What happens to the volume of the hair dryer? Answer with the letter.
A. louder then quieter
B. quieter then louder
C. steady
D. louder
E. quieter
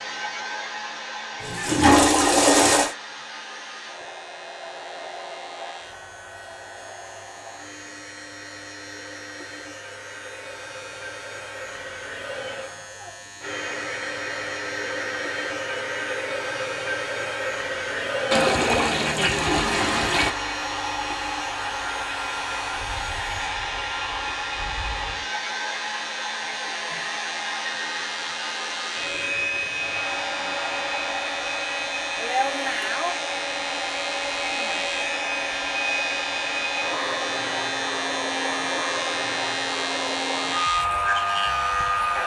D.